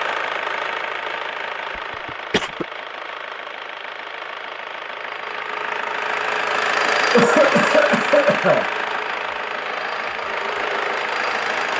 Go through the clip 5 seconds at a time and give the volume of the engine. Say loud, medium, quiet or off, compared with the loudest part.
medium, loud, loud.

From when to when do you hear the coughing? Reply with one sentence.
The coughing can be heard from 2.0 to 2.6 s and from 7.1 to 8.7 s.